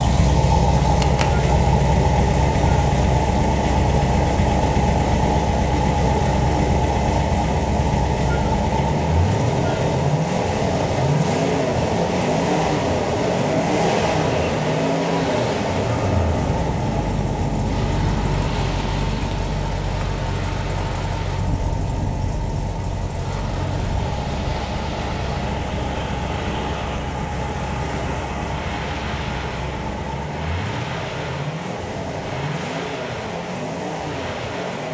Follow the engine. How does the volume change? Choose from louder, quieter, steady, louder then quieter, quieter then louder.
quieter.